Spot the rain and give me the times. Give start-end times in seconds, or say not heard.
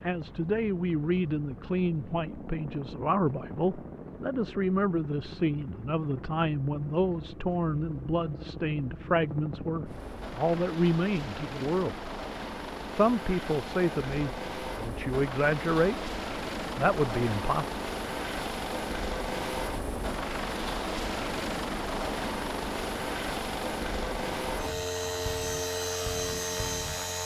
not heard.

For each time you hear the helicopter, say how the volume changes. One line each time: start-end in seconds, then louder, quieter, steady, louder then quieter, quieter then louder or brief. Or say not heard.
0.0-27.2 louder.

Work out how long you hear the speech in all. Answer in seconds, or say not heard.
16 s.